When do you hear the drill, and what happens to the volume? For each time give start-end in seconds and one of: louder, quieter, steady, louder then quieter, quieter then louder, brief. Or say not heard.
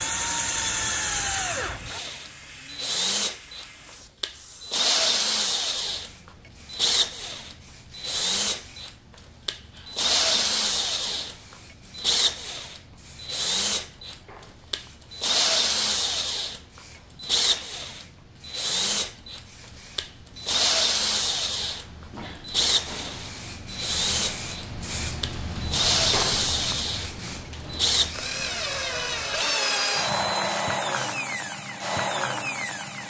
0.0-33.0 steady.